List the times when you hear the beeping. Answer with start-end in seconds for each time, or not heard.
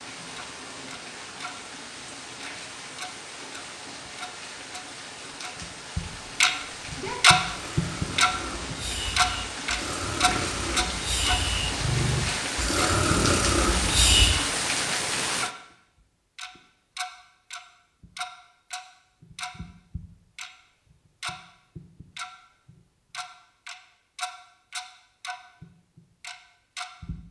not heard.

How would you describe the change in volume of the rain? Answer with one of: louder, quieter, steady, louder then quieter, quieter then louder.
louder.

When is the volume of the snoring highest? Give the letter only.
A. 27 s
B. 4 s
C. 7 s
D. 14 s
D.